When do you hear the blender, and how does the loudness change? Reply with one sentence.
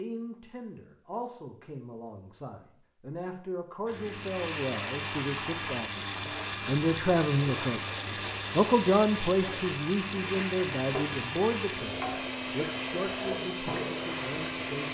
You can hear the blender from 4.0 to 14.8 s, at a steady volume.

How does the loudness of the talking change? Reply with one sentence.
The loudness of the talking goes up, then down.